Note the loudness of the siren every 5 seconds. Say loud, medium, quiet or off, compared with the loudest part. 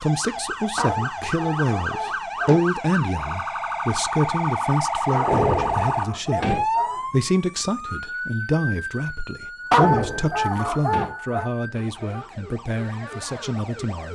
loud, loud, medium.